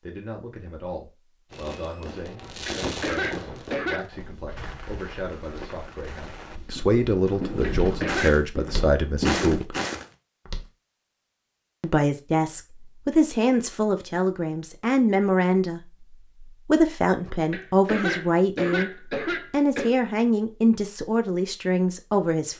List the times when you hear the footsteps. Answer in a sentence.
You can hear the footsteps from 4.2 to 10.7 s.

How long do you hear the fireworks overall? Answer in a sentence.
The fireworks can be heard for 8 seconds in total.